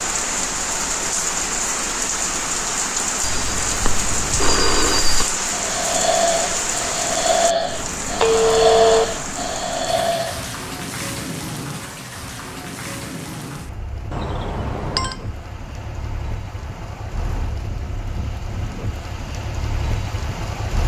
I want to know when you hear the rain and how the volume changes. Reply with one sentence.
The rain can be heard from 0.0 to 20.8 s, getting quieter.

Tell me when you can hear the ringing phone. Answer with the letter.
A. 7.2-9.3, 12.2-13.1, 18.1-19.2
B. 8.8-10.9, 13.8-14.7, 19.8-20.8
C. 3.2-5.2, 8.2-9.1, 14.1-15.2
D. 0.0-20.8
C.